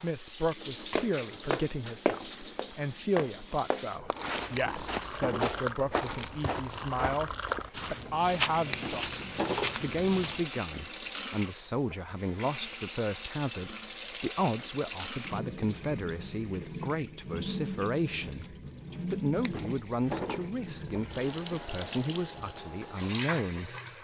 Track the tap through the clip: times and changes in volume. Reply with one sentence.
You can hear the tap from 0.0 to 23.9 s, at a steady volume.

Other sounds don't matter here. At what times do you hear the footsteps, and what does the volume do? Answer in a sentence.
You can hear the footsteps from 0.9 to 10.5 s, getting quieter then louder.